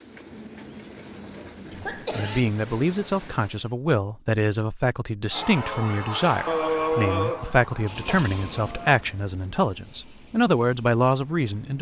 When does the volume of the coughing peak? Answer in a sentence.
The loudest moment of the coughing is at 7 seconds.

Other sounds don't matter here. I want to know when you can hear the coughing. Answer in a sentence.
You can hear the coughing from 1.4 to 2.5 s and from 6.5 to 8.2 s.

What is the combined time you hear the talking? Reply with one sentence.
You can hear the talking for 10 seconds altogether.